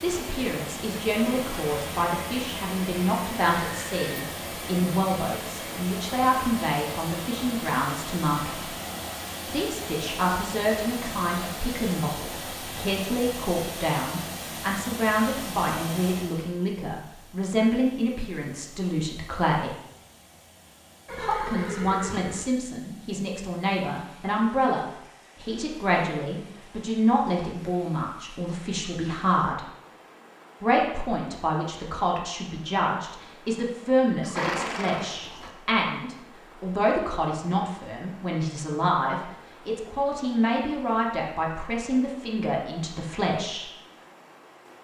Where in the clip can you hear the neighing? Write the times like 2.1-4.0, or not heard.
3.7-4.2, 21.1-22.4, 34.2-35.5.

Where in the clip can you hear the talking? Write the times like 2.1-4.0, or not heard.
0.0-8.7, 9.4-19.8, 21.1-29.6, 30.6-43.7.